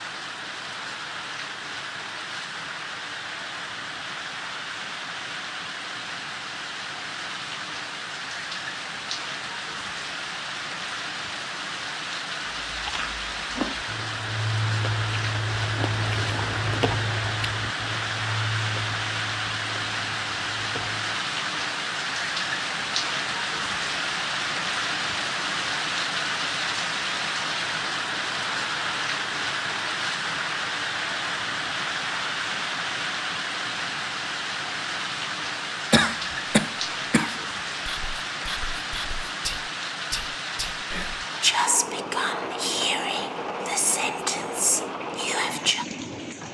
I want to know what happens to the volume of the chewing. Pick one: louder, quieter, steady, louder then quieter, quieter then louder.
quieter.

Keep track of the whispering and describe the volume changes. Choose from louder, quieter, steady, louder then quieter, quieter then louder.
louder.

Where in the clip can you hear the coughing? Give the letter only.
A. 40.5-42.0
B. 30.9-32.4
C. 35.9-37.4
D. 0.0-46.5
C.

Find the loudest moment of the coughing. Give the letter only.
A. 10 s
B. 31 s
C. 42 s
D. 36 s
D.